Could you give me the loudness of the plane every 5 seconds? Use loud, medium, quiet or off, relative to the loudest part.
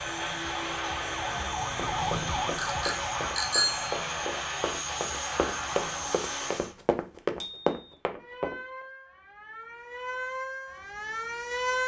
loud, loud, off.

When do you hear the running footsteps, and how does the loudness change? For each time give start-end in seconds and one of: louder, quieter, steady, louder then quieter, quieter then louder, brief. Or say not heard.
1.6-8.6 louder.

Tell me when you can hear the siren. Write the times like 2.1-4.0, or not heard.
0.0-6.2, 8.2-11.8.